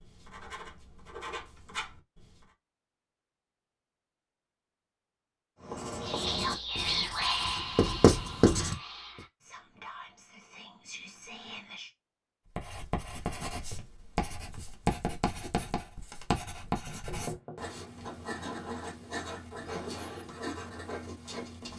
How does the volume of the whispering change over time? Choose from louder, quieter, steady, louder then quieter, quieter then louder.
quieter.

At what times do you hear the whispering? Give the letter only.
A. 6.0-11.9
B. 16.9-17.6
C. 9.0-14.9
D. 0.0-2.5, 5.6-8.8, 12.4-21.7
A.